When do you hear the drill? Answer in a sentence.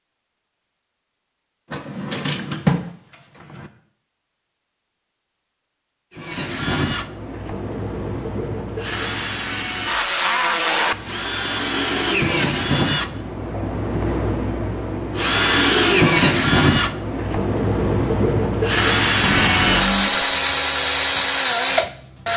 You can hear the drill from 6.2 to 22.3 s.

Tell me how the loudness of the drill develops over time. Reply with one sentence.
The loudness of the drill goes up.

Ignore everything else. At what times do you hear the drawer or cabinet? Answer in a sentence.
You can hear the drawer or cabinet from 1.7 to 3.7 s and from 19.2 to 20.4 s.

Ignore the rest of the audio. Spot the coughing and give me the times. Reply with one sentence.
You can't hear the coughing here.